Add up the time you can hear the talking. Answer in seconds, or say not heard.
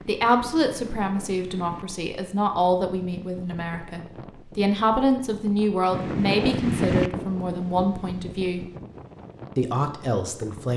10 s.